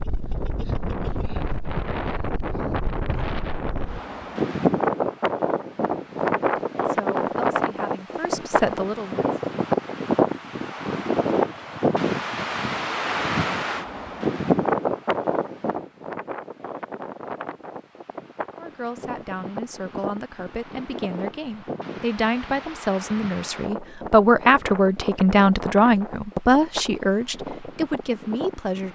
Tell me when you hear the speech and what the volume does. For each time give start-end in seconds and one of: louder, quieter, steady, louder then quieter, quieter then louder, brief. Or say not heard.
6.8-9.3 brief
18.6-28.9 louder then quieter.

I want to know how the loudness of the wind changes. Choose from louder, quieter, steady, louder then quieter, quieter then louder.
quieter.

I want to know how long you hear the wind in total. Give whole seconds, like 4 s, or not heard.
29 s.